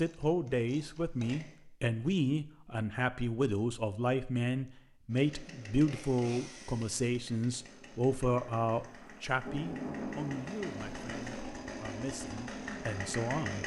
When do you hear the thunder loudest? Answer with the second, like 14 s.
10 s.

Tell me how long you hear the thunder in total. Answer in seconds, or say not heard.
3 s.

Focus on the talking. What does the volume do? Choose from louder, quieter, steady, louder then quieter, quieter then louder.
quieter.